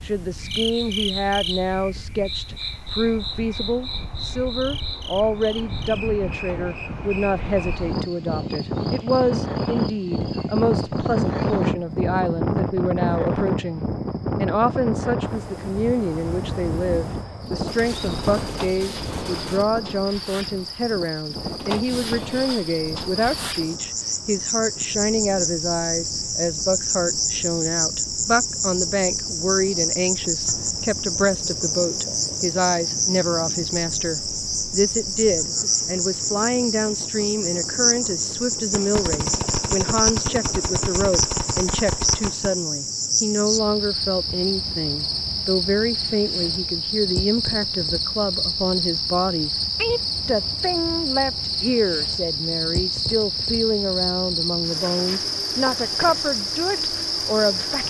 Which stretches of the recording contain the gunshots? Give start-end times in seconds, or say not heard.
17.6-19.6, 38.7-42.5.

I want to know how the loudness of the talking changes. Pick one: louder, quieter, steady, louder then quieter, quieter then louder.
steady.